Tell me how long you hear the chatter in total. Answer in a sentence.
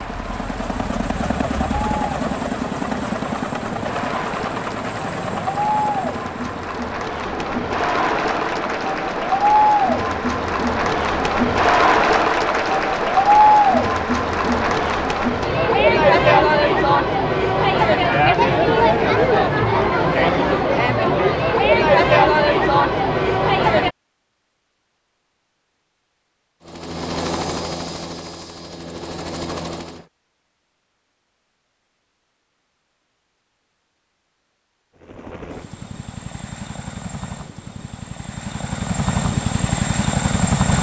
The chatter can be heard for 24 seconds in total.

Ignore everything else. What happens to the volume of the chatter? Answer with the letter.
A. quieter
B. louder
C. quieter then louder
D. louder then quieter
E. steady
B.